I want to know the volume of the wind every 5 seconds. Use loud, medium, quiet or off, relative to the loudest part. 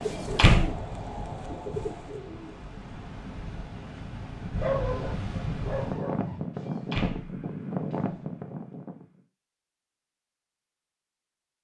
medium, loud, off.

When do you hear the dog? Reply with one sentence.
The dog can be heard from 4.5 to 6.5 s.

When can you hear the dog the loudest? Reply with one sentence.
The loudest moment of the dog is at 5 seconds.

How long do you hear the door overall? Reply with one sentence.
The door can be heard for 2 seconds in total.